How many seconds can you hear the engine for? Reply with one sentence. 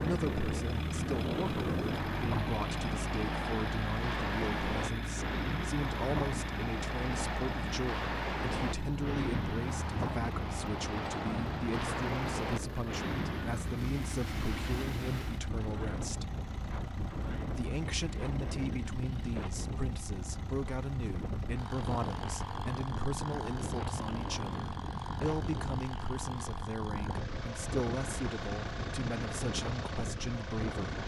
The engine can be heard for 31 seconds in total.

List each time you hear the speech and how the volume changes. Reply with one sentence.
You can hear the speech from 0.0 to 16.3 s, at a steady volume; and from 17.6 to 31.0 s, at a steady volume.